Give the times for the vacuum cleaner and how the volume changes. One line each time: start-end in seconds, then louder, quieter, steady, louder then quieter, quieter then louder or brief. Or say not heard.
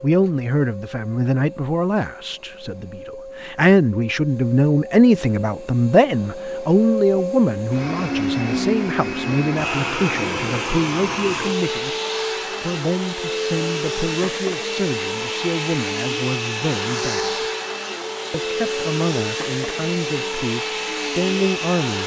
0.0-22.0 louder.